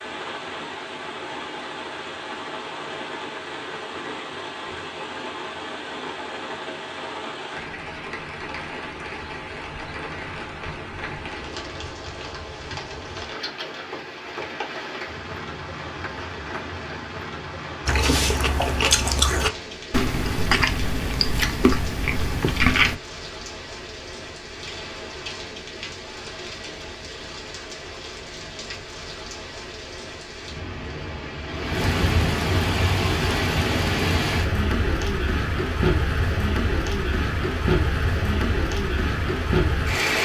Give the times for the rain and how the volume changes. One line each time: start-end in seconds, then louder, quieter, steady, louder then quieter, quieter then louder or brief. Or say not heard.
0.0-40.2 louder.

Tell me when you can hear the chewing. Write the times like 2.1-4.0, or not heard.
17.9-22.9.